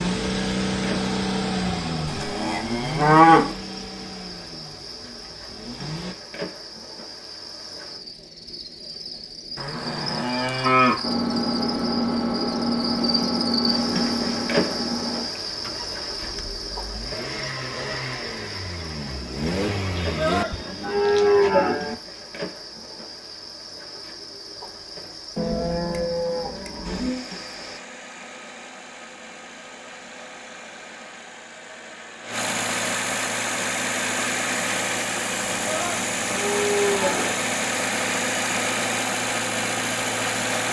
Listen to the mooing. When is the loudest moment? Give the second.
3 s.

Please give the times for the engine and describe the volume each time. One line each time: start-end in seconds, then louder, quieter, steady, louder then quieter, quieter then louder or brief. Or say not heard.
0.0-6.2 quieter
11.0-20.6 quieter then louder
26.8-40.6 louder.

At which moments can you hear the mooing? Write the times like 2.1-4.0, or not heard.
2.0-3.5, 9.6-11.0, 19.9-21.9, 25.4-27.2, 35.5-37.4.